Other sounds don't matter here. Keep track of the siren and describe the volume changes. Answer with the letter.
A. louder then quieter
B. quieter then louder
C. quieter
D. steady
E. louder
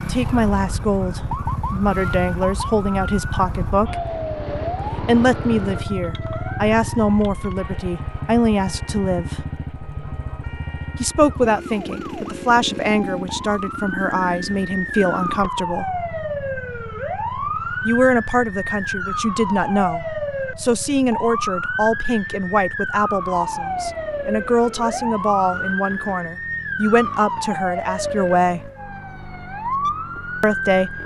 B.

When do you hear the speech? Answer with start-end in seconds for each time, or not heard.
0.1-4.0, 5.0-9.4, 10.9-15.9, 17.9-28.7, 30.4-31.0.